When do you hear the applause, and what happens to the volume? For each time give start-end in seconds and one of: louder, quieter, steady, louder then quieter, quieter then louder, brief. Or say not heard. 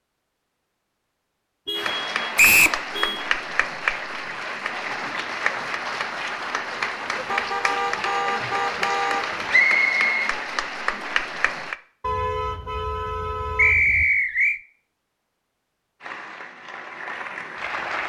1.8-11.8 steady
16.0-18.0 brief.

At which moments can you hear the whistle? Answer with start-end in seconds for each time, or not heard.
2.4-2.8, 9.5-10.3, 13.6-14.6.